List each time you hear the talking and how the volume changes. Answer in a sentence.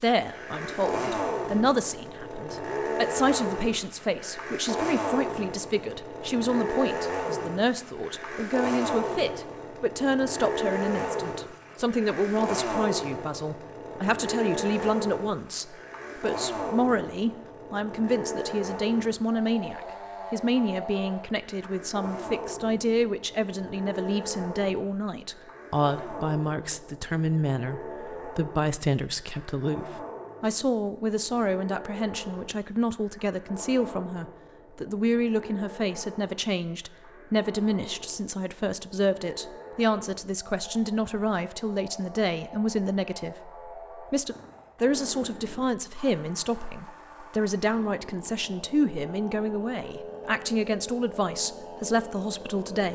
The talking can be heard from 0.0 to 52.9 s, at a steady volume.